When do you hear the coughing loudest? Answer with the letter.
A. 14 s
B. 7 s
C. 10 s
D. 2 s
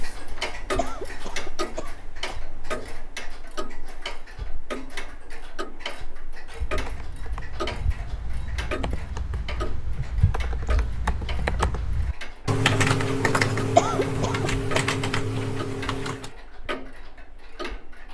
A.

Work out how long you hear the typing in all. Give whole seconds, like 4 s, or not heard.
10 s.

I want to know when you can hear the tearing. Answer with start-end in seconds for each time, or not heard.
not heard.